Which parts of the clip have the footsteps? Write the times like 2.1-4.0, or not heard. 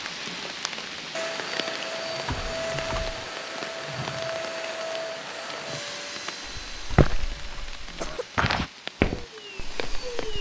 6.5-10.3.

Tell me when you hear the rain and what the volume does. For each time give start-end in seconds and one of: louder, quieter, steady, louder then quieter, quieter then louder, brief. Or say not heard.
0.0-10.1 quieter.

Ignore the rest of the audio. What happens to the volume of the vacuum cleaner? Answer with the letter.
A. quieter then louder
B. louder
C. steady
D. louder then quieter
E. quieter
E.